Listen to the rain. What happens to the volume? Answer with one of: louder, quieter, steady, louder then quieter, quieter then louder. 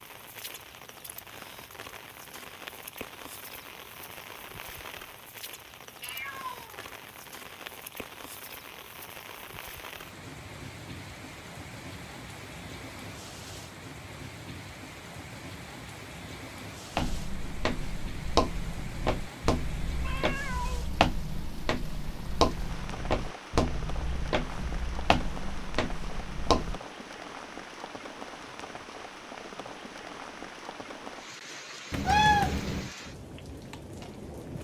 steady.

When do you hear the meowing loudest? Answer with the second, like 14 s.
32 s.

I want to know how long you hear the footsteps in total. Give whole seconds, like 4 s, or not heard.
10 s.